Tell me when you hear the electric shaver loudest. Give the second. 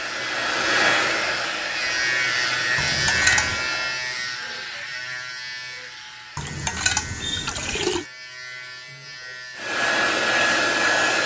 3 s.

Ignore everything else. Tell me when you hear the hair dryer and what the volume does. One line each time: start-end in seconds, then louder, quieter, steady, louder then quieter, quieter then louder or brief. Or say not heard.
0.0-4.0 quieter
9.6-11.2 brief.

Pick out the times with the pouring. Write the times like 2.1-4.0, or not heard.
2.8-3.7, 6.3-8.1.